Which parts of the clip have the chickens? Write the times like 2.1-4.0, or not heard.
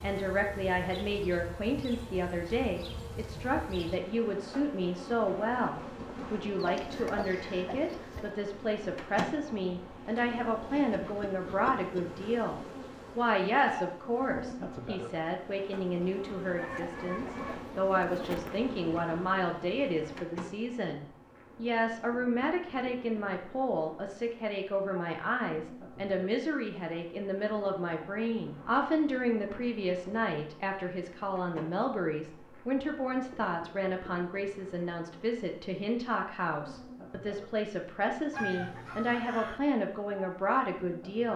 6.5-8.3, 16.6-18.6, 38.3-39.6.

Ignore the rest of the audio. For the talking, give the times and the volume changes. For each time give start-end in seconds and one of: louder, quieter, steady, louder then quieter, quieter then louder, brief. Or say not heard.
0.0-41.3 steady.